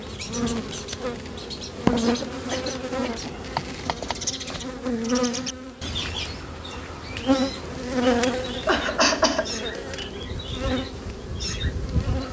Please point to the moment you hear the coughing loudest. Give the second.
9 s.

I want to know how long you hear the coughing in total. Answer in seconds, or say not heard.
2 s.